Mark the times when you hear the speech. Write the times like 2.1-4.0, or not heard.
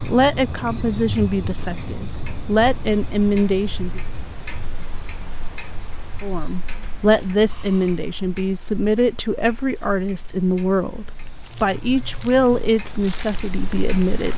0.1-4.0, 6.2-14.3.